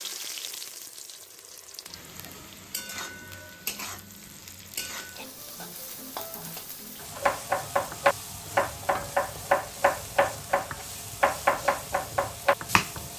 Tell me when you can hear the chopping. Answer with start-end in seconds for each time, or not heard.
7.2-12.9.